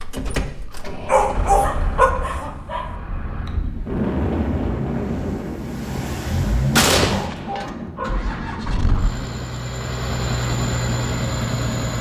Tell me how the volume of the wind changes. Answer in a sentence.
The volume of the wind goes up, then down.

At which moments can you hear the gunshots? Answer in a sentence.
The gunshots can be heard from 6.8 to 7.7 s.